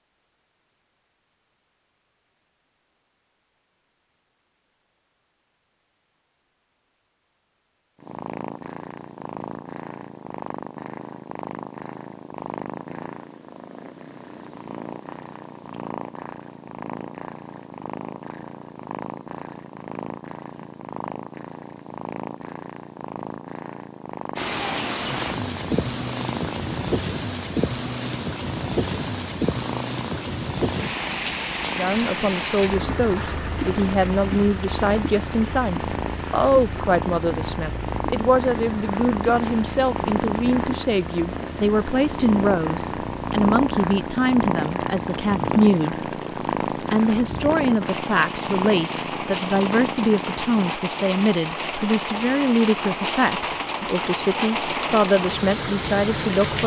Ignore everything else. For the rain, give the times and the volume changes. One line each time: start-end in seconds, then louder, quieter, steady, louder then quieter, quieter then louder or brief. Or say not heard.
24.4-56.6 quieter then louder.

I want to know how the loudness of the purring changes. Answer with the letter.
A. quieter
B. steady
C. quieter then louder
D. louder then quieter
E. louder
E.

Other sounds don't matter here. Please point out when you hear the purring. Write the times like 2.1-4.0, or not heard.
8.0-50.8.